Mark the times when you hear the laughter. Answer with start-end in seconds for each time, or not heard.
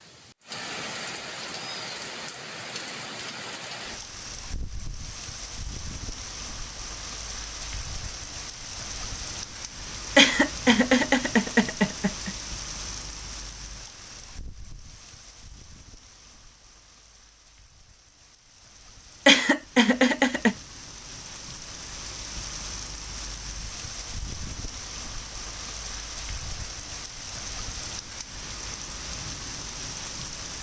10.2-12.3, 19.2-20.6.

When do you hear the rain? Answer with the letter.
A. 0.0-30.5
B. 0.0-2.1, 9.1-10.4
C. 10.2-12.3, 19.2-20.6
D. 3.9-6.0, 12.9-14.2
A.